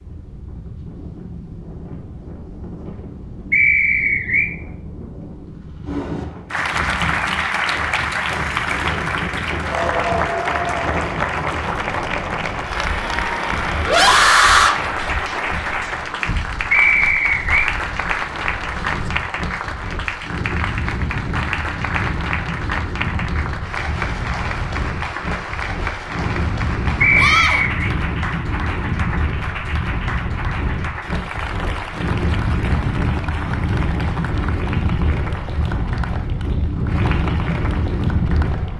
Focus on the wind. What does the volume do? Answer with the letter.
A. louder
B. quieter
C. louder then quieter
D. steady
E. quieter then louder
A.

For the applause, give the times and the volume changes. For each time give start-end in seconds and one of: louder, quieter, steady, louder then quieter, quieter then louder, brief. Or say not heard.
6.5-38.7 quieter.